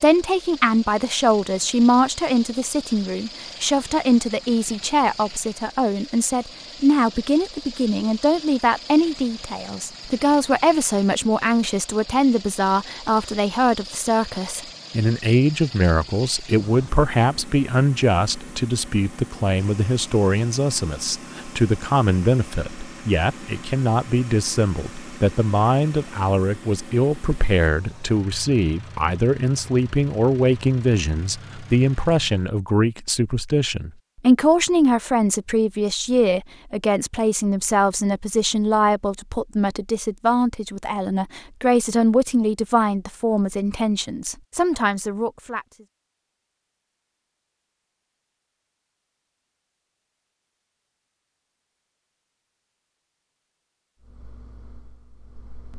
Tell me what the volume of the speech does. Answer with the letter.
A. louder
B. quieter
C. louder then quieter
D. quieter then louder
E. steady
E.